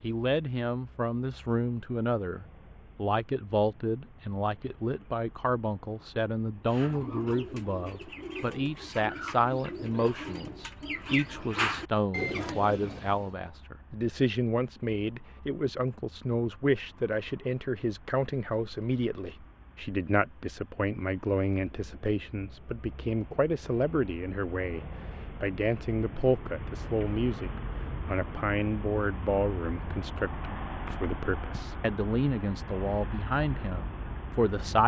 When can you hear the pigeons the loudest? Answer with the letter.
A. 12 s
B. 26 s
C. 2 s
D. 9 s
A.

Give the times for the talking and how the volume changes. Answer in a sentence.
The talking can be heard from 0.0 to 34.8 s, at a steady volume.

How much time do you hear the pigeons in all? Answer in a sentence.
You can hear the pigeons for 7 seconds altogether.